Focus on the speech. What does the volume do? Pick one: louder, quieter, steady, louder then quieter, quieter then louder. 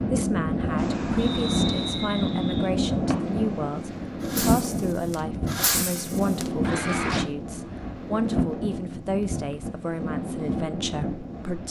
steady.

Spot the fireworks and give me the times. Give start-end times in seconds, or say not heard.
0.8-7.2.